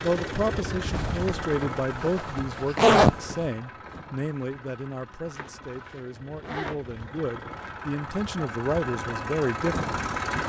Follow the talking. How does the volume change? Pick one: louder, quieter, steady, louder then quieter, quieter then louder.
quieter then louder.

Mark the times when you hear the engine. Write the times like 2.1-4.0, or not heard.
0.0-10.4.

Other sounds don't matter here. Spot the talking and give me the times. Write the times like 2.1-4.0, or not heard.
0.0-9.9.